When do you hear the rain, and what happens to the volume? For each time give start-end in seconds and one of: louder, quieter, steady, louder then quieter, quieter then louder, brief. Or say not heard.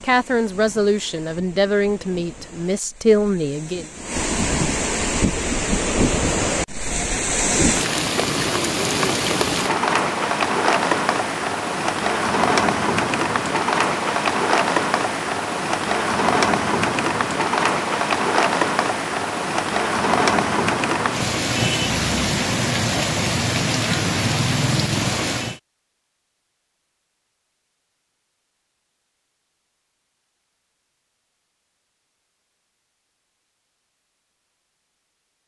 0.0-25.6 louder.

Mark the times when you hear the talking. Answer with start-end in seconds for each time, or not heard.
0.0-3.9.